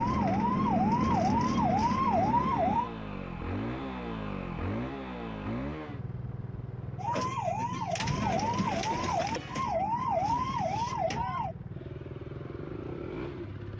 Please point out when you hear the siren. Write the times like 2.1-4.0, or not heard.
0.0-2.9, 7.0-11.6.